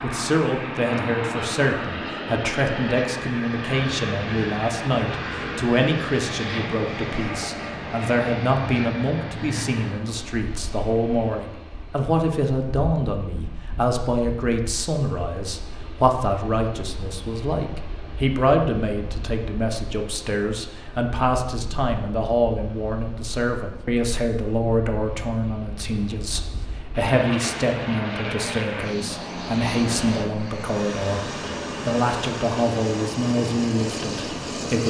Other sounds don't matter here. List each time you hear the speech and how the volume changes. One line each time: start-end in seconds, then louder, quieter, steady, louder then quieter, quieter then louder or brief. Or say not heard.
0.0-34.8 steady.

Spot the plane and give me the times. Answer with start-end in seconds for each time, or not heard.
0.0-34.8.